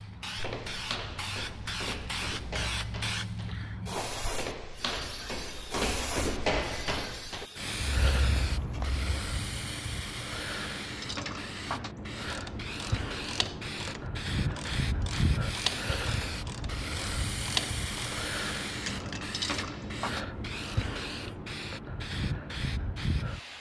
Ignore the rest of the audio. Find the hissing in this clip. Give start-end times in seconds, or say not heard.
0.0-23.5.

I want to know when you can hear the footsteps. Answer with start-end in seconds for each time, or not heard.
0.3-9.1.